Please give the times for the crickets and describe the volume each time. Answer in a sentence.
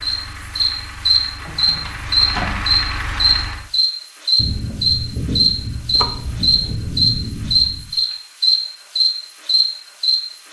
The crickets can be heard from 0.0 to 10.4 s, at a steady volume.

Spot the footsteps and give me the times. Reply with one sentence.
The footsteps can't be heard in this clip.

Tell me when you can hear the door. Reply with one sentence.
You can hear the door from 1.4 to 2.6 s and from 5.9 to 6.8 s.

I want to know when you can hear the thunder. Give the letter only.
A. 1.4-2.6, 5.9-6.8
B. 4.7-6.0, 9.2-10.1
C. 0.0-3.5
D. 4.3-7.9
D.